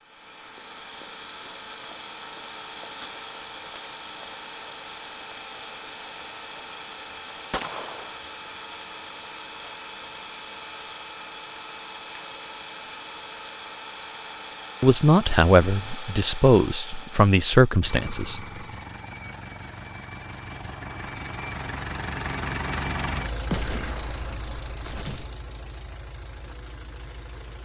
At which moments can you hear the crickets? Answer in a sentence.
You can't hear the crickets here.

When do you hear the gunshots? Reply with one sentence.
You can hear the gunshots from 7.5 to 8.2 s and from 23.4 to 25.2 s.